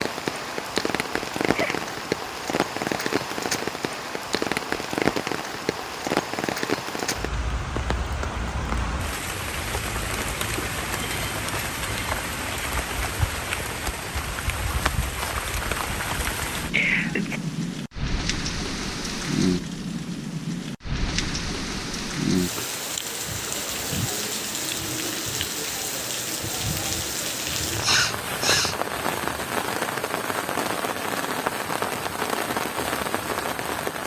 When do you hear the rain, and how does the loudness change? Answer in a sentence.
You can hear the rain from 0.0 to 34.0 s, at a steady volume.